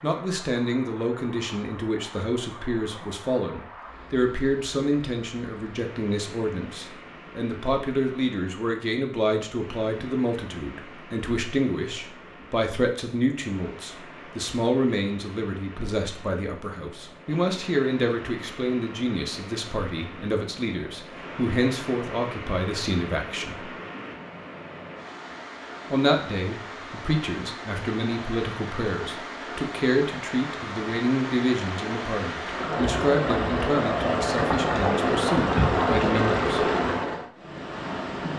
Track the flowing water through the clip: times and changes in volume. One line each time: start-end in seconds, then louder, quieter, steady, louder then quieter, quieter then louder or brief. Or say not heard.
0.0-38.3 louder.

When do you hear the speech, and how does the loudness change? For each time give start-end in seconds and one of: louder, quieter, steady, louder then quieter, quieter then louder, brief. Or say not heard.
0.0-23.7 steady
25.9-36.7 steady.